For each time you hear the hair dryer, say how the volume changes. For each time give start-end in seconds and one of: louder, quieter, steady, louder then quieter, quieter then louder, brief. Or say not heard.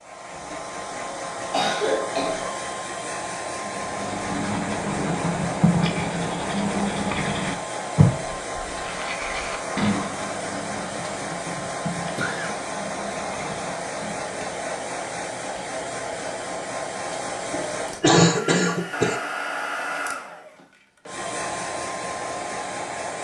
0.0-23.2 steady.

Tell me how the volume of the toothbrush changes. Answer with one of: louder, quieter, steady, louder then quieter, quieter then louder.
quieter.